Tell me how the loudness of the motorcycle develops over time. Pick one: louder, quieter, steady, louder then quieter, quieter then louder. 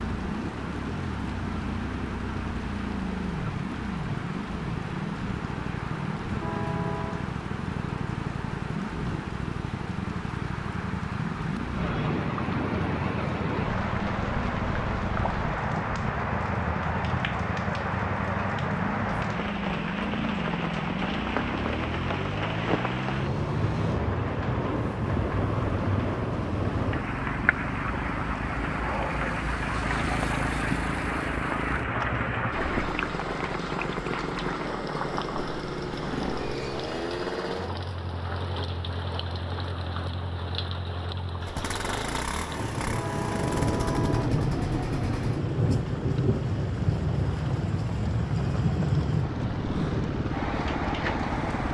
steady.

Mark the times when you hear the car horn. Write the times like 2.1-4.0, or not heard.
6.4-7.3, 42.9-44.3.